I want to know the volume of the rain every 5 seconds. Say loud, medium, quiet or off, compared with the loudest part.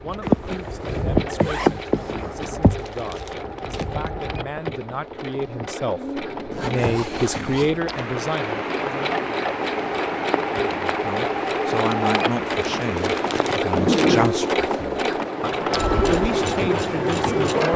loud, medium, loud, loud.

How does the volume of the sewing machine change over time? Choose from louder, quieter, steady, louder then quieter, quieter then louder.
louder.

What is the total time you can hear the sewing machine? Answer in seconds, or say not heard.
18 s.